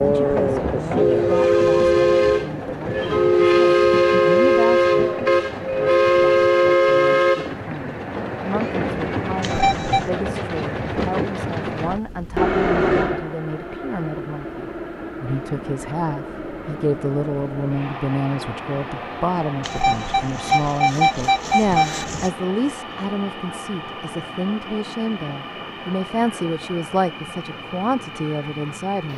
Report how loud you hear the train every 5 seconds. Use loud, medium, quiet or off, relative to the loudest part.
loud, loud, medium, quiet, quiet, quiet.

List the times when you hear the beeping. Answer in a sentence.
You can hear the beeping from 9.4 to 10.1 s and from 19.6 to 22.3 s.